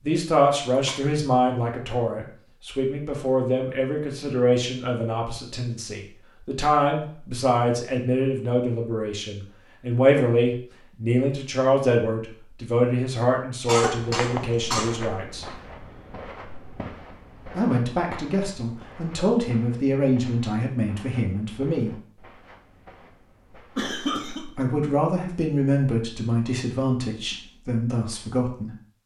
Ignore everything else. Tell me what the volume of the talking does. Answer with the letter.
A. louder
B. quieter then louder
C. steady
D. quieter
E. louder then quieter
C.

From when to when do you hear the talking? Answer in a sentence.
You can hear the talking from 0.0 to 15.4 s, from 17.4 to 22.0 s and from 24.5 to 28.7 s.